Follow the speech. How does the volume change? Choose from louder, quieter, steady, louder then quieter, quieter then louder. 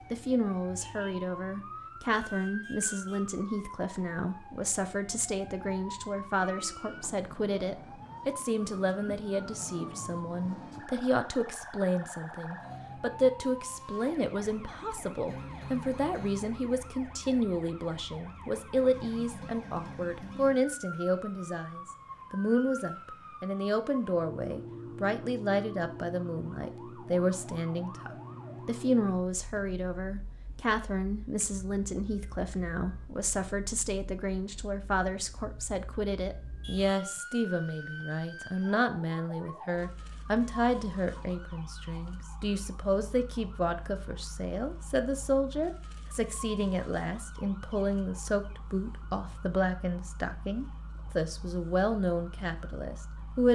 steady.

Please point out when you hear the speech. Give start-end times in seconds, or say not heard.
0.1-53.5.